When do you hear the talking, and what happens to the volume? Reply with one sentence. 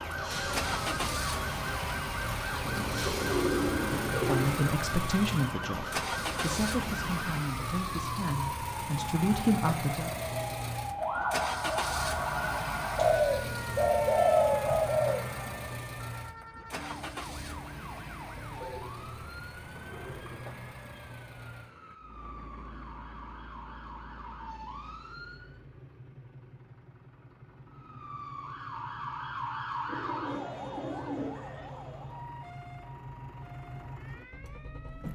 You can hear the talking from 4.1 to 10.1 s, getting quieter then louder.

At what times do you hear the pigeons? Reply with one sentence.
You can hear the pigeons from 2.6 to 4.5 s, from 12.9 to 15.8 s, from 18.6 to 20.6 s and from 29.9 to 31.7 s.